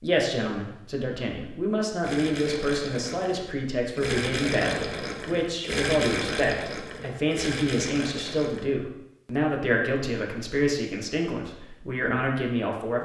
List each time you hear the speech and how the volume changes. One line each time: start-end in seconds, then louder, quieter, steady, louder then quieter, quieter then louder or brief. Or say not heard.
0.0-13.0 steady.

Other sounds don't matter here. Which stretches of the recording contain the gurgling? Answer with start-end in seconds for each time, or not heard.
2.0-8.7.